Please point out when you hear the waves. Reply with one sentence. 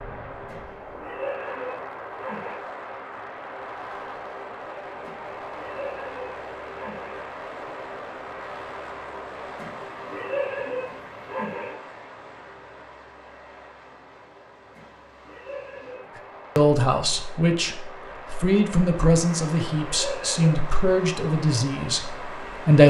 You can't hear the waves here.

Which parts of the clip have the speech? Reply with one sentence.
The speech can be heard from 16.6 to 22.8 s.